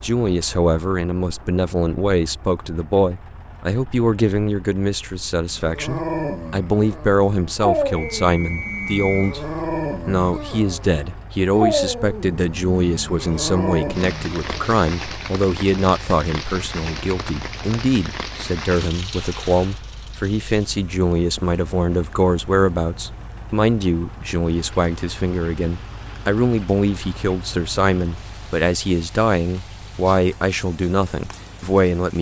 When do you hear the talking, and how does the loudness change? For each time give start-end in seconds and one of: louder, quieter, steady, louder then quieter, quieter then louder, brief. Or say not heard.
0.0-32.1 steady.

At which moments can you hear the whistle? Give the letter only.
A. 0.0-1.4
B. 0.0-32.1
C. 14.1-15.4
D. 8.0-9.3
D.